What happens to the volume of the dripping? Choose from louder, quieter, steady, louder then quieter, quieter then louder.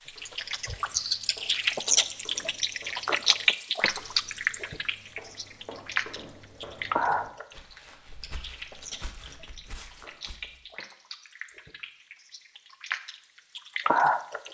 quieter then louder.